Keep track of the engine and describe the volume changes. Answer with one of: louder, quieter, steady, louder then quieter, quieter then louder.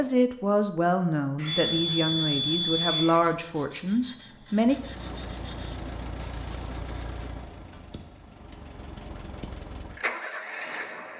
quieter then louder.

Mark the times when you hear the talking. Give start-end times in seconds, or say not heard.
0.0-4.8.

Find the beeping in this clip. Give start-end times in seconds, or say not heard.
1.4-3.2, 7.9-9.5.